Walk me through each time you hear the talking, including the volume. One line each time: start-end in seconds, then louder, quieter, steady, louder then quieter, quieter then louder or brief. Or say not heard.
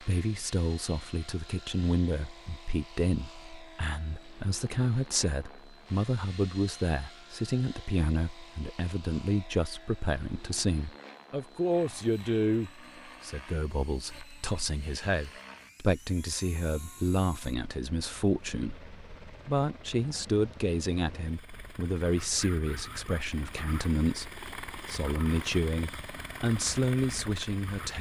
0.0-27.9 steady.